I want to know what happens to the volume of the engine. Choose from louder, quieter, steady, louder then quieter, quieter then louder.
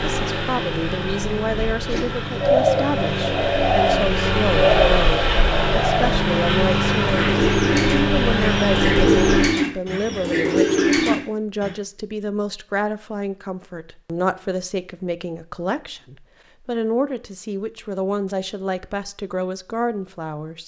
louder.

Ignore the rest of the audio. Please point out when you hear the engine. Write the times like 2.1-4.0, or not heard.
0.0-9.5.